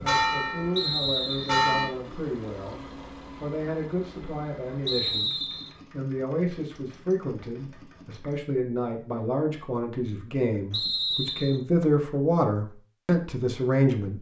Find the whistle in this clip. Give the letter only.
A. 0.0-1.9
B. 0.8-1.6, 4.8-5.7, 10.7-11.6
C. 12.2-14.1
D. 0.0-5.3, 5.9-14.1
B.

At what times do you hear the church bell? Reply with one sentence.
The church bell can be heard from 0.0 to 1.9 s.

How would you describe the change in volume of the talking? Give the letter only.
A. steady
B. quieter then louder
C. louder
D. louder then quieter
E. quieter
C.